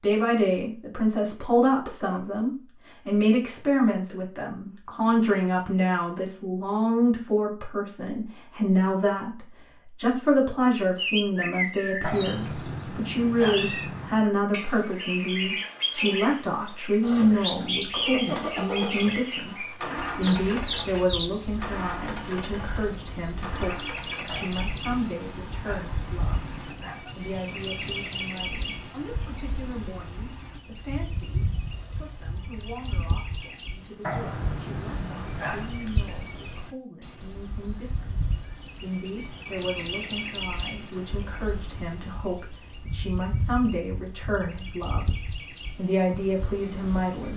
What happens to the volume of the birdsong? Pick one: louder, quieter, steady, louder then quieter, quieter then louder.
quieter.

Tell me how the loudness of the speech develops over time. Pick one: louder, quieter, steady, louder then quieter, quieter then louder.
quieter then louder.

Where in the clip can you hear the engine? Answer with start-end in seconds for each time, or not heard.
17.0-33.5.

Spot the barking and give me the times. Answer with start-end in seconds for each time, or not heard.
12.0-14.2, 24.2-27.1, 34.0-35.8.